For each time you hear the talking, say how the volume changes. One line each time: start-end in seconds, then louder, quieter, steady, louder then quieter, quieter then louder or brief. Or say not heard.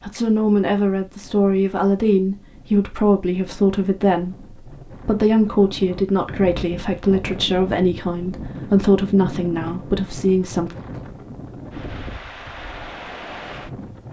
0.0-10.8 steady.